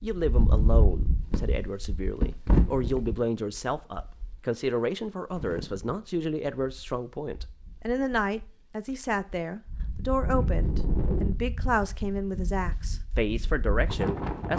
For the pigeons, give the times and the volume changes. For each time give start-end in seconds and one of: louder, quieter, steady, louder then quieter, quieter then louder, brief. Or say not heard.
not heard.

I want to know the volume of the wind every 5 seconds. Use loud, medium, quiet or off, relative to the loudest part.
loud, quiet, loud.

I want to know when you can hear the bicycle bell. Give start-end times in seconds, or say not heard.
not heard.